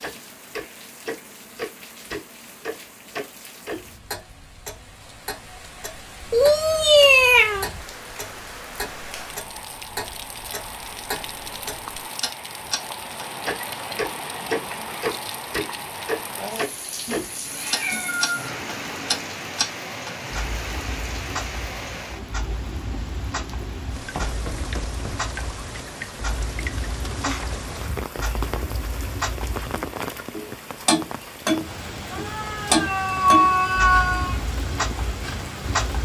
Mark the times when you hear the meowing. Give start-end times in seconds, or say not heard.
6.3-7.7, 17.1-19.3, 32.1-34.4.